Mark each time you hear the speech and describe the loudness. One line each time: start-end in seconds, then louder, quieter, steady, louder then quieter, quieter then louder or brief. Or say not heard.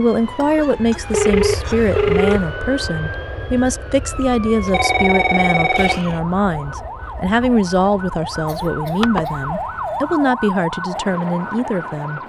0.0-12.2 steady.